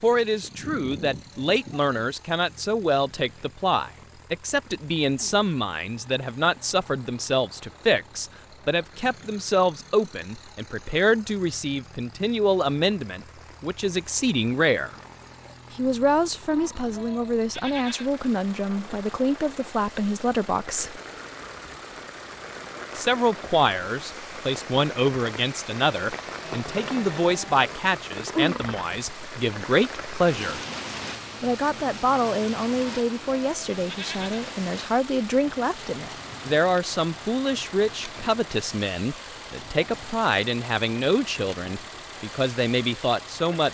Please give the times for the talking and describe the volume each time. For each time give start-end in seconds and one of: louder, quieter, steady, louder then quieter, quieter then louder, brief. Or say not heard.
0.0-14.9 steady
15.8-21.0 steady
22.9-30.6 steady
31.4-43.6 steady.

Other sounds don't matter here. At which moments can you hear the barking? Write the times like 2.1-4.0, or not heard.
not heard.